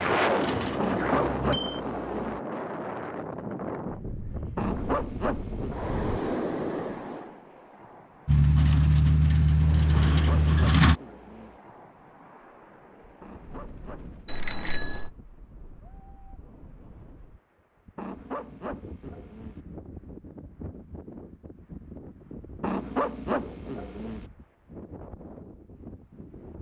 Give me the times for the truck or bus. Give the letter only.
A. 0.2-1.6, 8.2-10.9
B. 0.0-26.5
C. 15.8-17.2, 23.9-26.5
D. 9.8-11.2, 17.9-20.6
A.